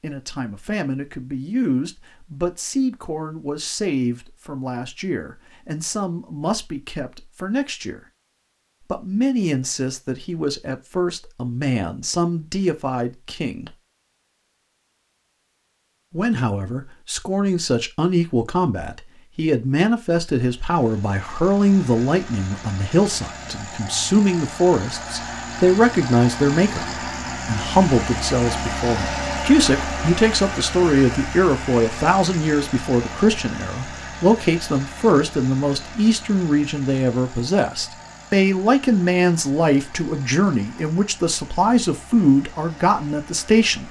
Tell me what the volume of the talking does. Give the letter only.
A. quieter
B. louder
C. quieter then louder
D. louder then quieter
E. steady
B.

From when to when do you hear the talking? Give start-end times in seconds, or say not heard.
0.0-8.0, 8.9-13.8, 16.1-43.8.